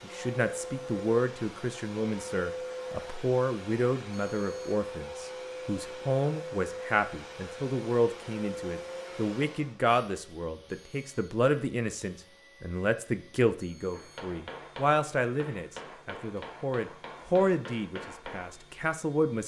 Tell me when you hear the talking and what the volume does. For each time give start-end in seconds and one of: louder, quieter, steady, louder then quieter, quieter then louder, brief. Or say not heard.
0.0-19.4 steady.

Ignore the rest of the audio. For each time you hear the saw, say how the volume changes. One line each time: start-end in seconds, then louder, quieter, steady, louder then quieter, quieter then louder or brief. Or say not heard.
not heard.